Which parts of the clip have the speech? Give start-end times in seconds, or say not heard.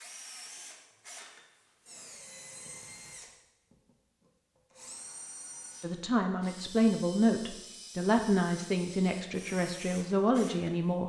5.8-11.0.